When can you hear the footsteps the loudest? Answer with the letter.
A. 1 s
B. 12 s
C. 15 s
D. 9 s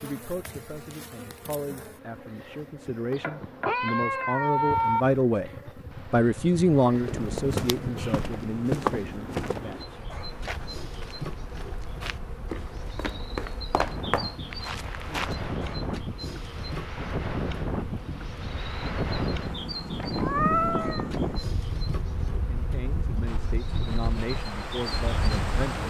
D.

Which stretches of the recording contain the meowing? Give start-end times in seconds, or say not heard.
3.1-5.0, 20.0-21.1.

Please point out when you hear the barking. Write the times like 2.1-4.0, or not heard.
not heard.